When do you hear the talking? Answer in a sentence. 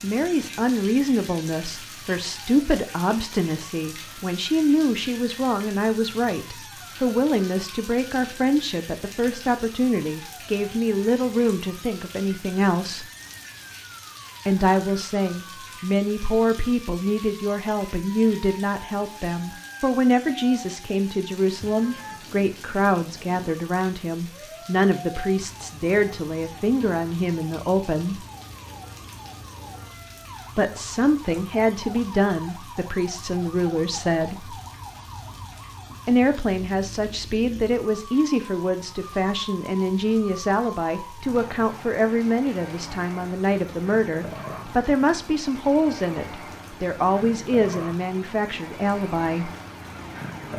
The talking can be heard from 0.0 to 13.1 s, from 14.4 to 28.2 s, from 30.6 to 34.5 s and from 36.0 to 49.5 s.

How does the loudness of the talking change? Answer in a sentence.
The loudness of the talking stays about the same.